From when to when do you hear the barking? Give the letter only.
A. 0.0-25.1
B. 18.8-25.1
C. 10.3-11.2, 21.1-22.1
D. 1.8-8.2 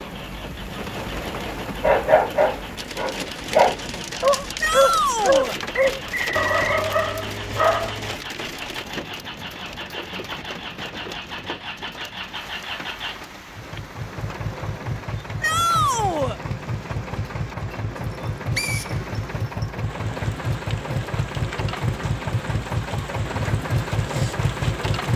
D.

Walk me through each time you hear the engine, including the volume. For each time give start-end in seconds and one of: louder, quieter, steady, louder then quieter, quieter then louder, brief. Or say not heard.
0.0-25.1 louder.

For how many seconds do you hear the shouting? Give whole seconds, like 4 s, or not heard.
2 s.